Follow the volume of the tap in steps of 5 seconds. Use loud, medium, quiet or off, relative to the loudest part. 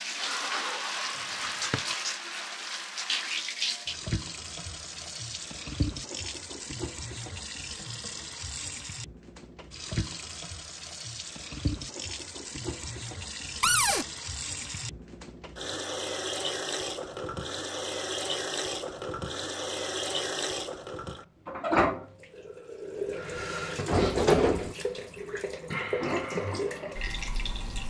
loud, medium, medium, loud, loud, loud.